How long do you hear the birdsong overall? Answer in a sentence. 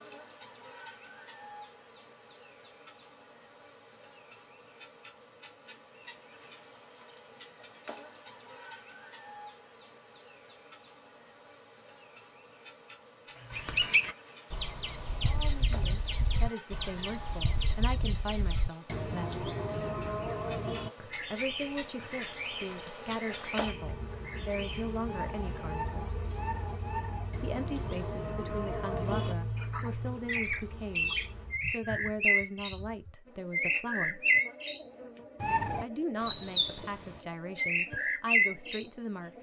The birdsong can be heard for 26 seconds in total.